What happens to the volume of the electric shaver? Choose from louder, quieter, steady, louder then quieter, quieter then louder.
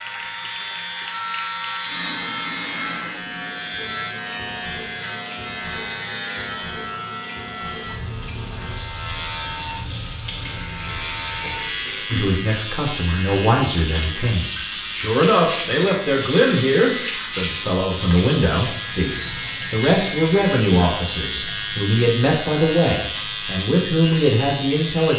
steady.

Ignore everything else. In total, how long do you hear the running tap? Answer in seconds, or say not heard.
25 s.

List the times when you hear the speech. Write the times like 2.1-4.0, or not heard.
12.1-25.1.